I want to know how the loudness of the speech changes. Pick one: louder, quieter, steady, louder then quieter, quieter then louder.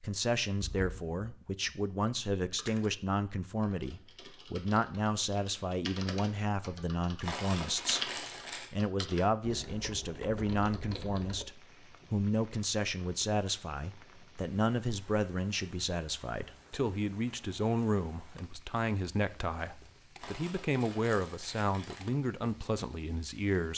steady.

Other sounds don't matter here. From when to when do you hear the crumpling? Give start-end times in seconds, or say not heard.
7.2-8.7, 20.1-22.1.